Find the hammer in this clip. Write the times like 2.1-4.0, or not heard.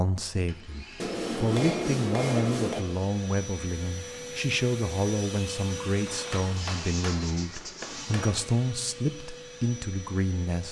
0.9-2.9, 6.0-8.6.